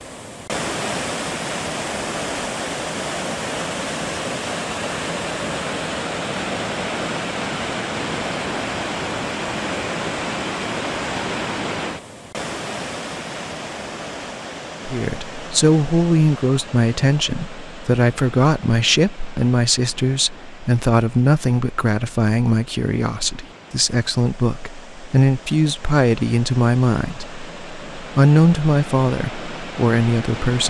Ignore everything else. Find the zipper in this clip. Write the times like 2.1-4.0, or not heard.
not heard.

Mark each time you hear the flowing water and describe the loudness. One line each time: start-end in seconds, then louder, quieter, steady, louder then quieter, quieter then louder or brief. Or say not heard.
0.0-30.6 quieter then louder.